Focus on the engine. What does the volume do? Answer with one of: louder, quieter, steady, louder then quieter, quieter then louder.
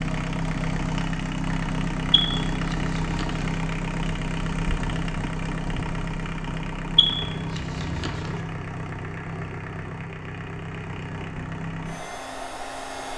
quieter.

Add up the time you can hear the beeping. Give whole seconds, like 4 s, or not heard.
3 s.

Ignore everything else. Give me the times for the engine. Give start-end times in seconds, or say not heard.
0.0-13.1.